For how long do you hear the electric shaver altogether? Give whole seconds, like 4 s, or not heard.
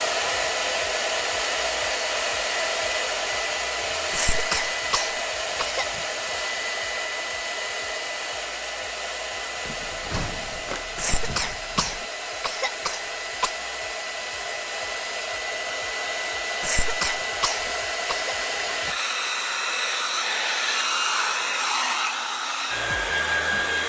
not heard.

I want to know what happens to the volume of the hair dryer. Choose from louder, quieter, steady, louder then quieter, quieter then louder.
quieter then louder.